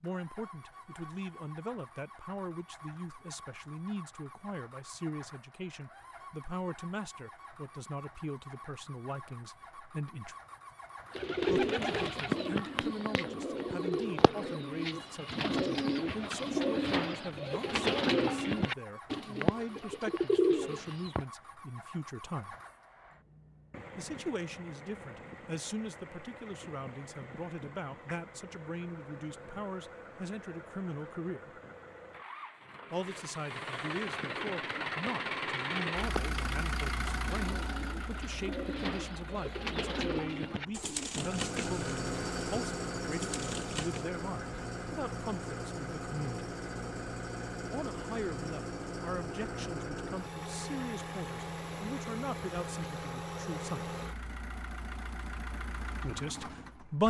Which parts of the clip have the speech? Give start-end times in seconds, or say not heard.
0.0-10.3, 11.4-22.6, 23.9-31.5, 32.9-46.5, 47.7-54.0, 56.0-57.0.